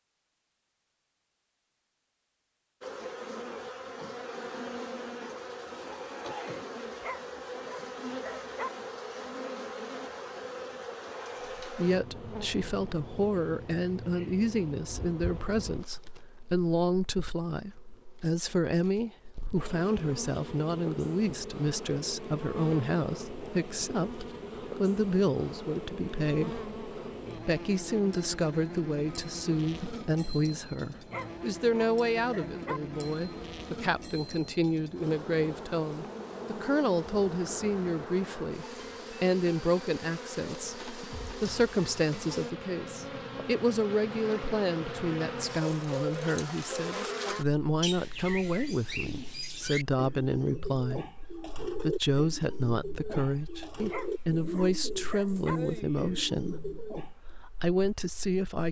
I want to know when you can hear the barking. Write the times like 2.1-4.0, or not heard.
6.8-8.7, 30.9-32.8, 53.8-55.6.